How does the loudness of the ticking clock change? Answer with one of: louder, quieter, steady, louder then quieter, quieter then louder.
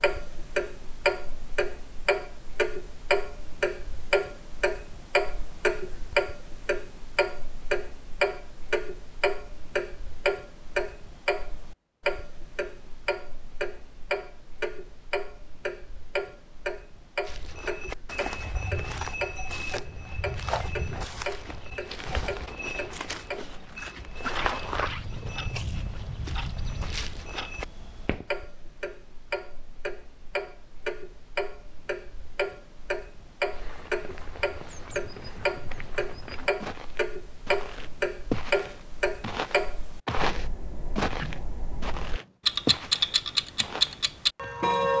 quieter then louder.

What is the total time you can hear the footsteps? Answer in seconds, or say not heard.
22 s.